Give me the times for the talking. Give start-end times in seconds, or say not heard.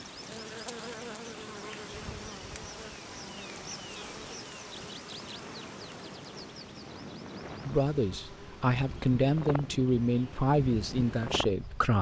7.7-11.9.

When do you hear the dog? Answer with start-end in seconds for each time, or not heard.
not heard.